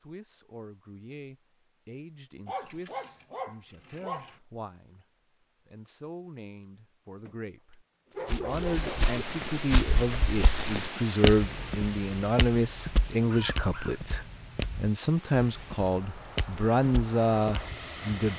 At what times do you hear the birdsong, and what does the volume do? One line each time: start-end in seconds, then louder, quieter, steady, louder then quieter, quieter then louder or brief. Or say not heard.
not heard.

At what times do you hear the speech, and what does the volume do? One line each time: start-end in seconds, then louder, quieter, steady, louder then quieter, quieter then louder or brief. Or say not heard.
0.0-5.0 quieter then louder
5.7-18.3 louder.